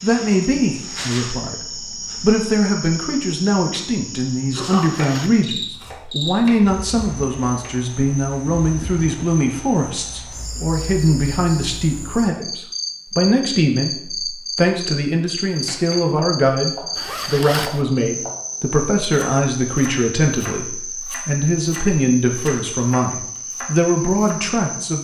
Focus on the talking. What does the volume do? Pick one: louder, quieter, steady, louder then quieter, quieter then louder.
steady.